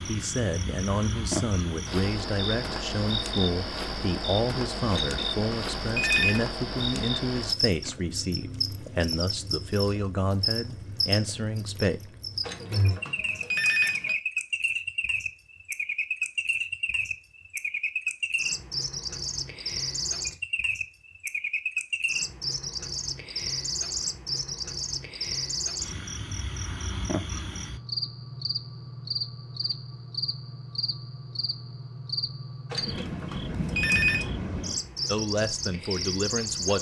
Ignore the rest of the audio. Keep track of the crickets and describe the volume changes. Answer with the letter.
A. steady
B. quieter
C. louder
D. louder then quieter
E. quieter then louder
A.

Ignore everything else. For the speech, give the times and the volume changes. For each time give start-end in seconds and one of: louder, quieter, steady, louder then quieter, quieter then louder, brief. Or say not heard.
0.1-12.2 steady
35.0-36.7 brief.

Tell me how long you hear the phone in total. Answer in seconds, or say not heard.
5 s.